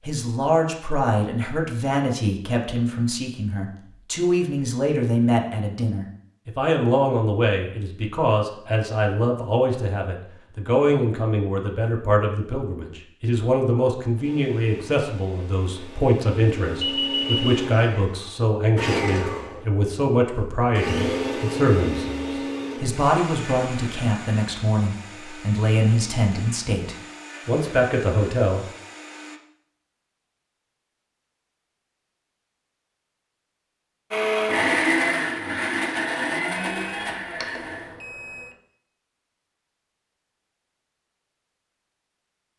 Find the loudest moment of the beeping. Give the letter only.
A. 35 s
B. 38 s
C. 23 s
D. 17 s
D.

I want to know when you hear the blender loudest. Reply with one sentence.
The loudest moment of the blender is at 35 seconds.